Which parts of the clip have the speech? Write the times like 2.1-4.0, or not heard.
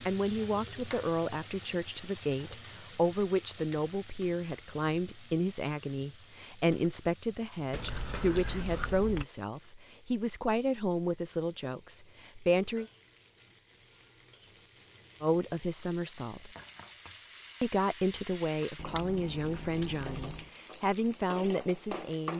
0.0-12.8, 15.2-16.5, 17.6-22.3.